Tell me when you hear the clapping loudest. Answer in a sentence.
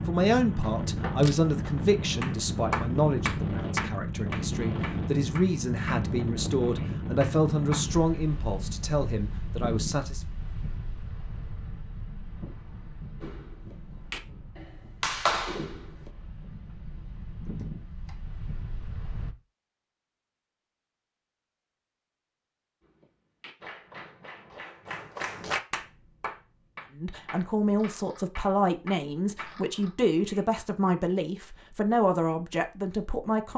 The volume of the clapping peaks at 15 seconds.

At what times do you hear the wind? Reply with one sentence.
You can hear the wind from 0.0 to 19.4 s.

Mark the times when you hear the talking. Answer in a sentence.
The talking can be heard from 0.1 to 10.2 s and from 26.9 to 33.5 s.